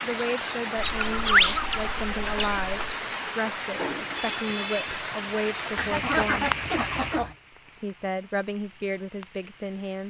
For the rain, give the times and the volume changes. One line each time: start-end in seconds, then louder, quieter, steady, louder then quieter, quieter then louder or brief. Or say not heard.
0.0-10.0 quieter.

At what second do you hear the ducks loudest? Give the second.
1 s.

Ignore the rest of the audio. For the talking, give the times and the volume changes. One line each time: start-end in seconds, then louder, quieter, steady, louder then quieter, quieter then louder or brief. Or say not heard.
0.0-6.5 steady
7.8-10.0 brief.